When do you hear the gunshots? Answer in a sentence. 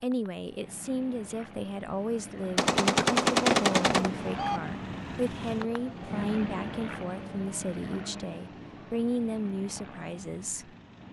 You can hear the gunshots from 2.5 to 4.6 s.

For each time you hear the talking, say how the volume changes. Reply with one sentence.
You can hear the talking from 0.0 to 10.7 s, at a steady volume.